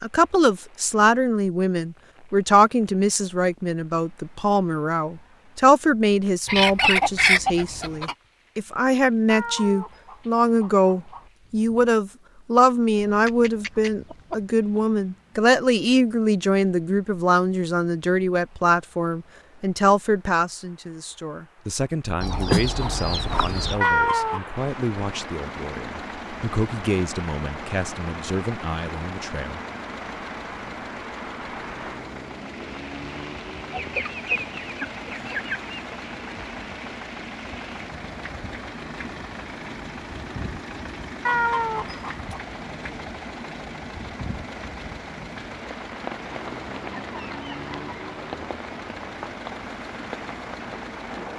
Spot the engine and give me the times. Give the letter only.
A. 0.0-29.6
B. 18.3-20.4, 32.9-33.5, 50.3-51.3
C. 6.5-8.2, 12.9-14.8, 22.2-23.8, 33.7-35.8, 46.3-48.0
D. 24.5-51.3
D.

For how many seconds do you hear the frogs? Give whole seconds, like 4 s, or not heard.
not heard.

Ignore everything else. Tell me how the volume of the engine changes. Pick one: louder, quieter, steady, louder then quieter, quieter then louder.
steady.